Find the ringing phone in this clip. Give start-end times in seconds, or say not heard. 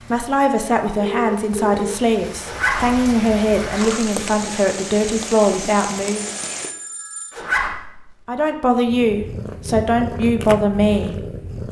0.9-2.0, 6.3-7.4.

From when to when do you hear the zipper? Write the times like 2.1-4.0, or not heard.
2.4-4.2, 7.3-8.1.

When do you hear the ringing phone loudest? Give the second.
1 s.